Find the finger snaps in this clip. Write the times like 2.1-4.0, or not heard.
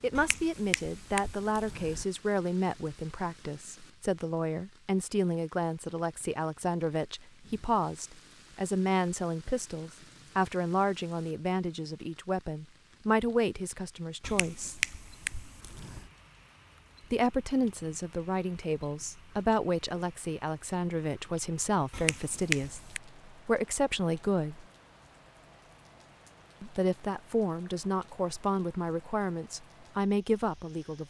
0.1-2.0, 14.2-16.1, 21.9-23.0.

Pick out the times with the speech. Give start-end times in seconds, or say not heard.
0.0-14.8, 17.1-24.6, 26.6-31.0.